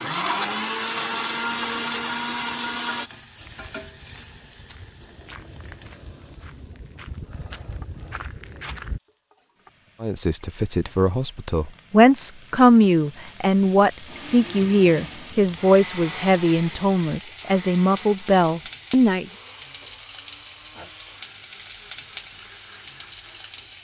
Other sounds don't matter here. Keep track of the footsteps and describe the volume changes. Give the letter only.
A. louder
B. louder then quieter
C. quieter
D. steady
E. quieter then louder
A.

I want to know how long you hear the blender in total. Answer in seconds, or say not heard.
13 s.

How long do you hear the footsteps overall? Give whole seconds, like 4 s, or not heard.
6 s.